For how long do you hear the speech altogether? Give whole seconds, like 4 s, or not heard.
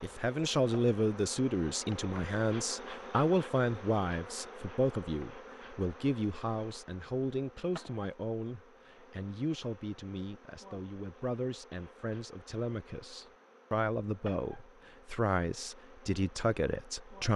17 s.